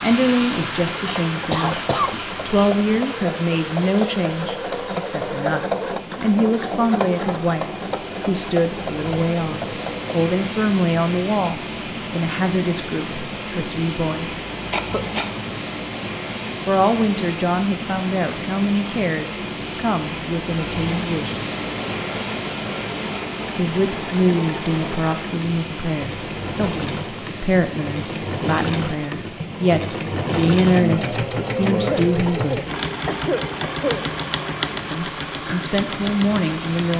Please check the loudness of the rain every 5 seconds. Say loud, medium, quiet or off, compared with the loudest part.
loud, medium, loud, loud, loud, medium, medium, medium.